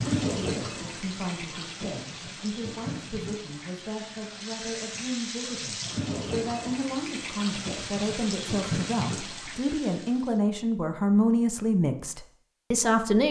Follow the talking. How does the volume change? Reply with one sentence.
The loudness of the talking goes up.